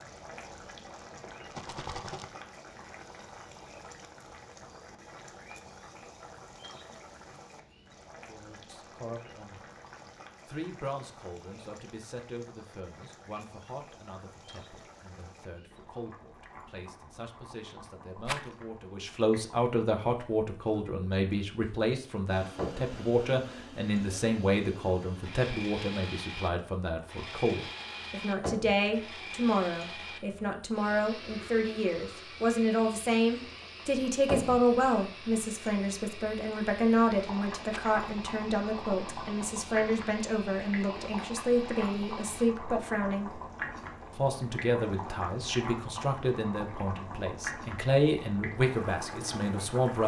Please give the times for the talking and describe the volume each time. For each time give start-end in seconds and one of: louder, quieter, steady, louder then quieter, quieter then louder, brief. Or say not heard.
8.2-9.7 brief
10.4-43.4 louder
44.1-50.0 quieter then louder.